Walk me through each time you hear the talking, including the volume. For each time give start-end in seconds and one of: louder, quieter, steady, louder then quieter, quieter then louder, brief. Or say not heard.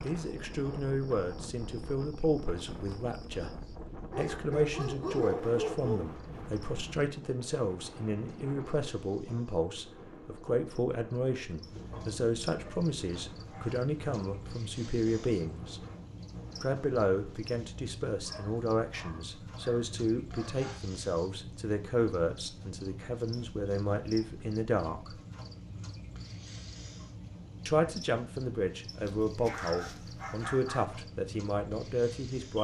0.0-15.8 steady
16.6-25.2 steady
27.6-32.5 steady.